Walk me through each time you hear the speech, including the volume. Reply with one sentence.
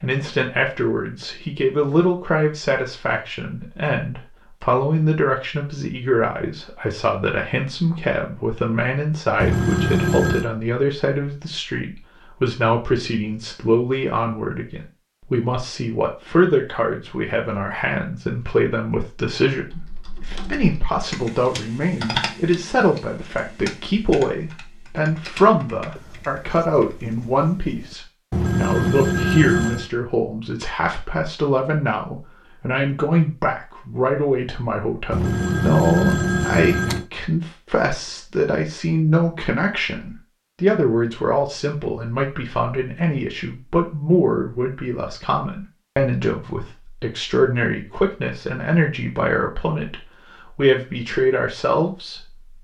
You can hear the speech from 0.0 to 52.4 s, at a steady volume.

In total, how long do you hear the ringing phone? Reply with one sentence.
You can hear the ringing phone for 5 seconds altogether.